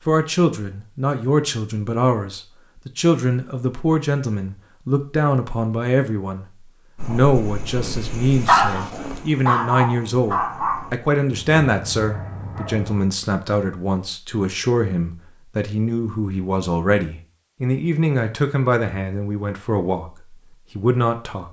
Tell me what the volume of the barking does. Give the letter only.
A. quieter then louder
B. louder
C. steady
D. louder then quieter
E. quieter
D.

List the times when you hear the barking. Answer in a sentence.
You can hear the barking from 7.0 to 13.1 s.